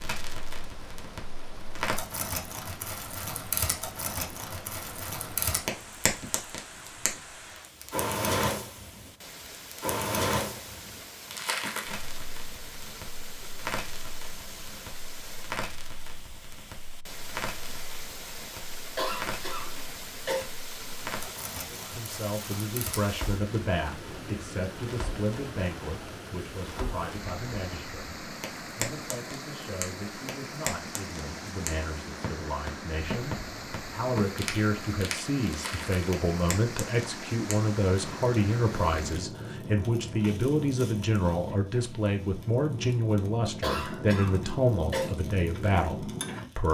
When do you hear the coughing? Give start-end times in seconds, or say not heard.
18.9-20.5, 43.6-45.1.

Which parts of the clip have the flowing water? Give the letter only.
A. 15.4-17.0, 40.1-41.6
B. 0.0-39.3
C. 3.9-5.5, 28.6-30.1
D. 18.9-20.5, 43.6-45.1
B.